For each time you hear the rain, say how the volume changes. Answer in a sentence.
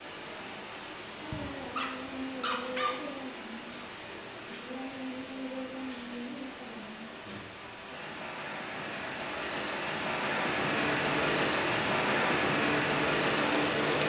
You can hear the rain from 0.0 to 14.0 s, getting louder.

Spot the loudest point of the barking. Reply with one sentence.
The loudest moment of the barking is at 3 seconds.